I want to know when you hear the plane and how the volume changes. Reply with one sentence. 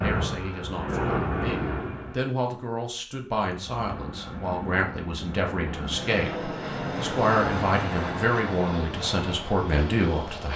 The plane can be heard briefly from 0.0 to 2.2 s; and from 3.4 to 10.5 s, getting louder then quieter.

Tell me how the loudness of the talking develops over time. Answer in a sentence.
The volume of the talking goes up.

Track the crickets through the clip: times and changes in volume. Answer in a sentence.
You can't hear the crickets here.